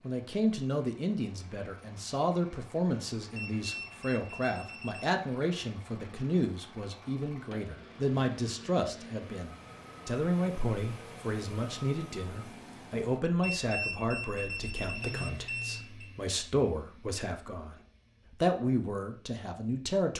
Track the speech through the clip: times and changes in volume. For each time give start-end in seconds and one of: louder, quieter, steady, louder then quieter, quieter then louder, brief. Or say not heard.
0.0-20.1 steady.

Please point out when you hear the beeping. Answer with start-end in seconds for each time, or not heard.
3.4-5.1, 13.4-16.1.